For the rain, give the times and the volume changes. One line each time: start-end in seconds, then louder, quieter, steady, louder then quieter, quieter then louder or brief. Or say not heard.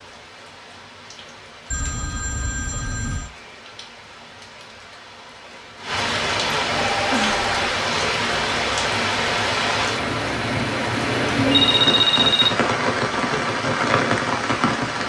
0.0-15.0 louder.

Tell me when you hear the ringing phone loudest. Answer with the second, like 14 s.
12 s.